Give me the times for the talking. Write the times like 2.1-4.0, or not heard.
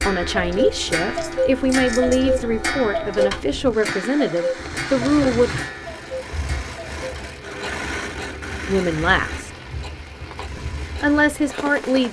0.0-5.5, 8.7-9.5, 10.6-12.0.